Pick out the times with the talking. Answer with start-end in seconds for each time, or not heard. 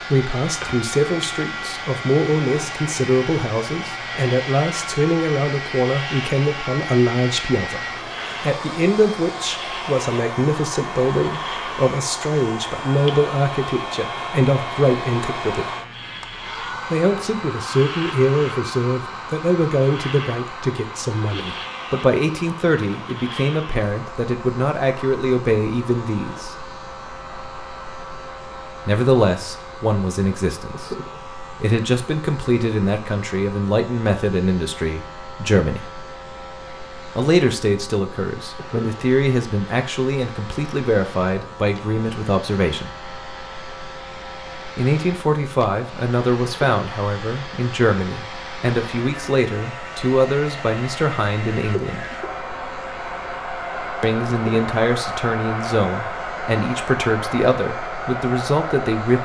0.1-15.7, 16.9-26.6, 28.9-35.9, 37.1-43.0, 44.8-52.1, 54.0-59.2.